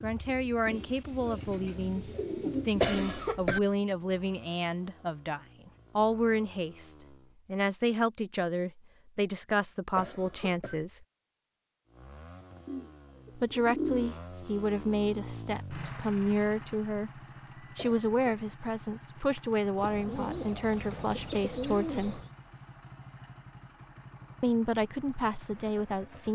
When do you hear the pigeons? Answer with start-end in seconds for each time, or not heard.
0.7-3.2, 12.7-14.4, 19.8-22.3.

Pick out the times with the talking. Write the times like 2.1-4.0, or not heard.
0.0-11.1, 13.3-17.1, 17.8-22.2, 24.4-26.3.